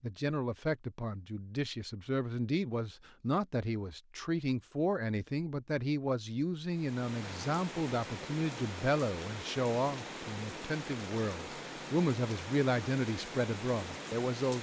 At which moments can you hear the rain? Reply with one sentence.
You can hear the rain from 6.7 to 14.5 s.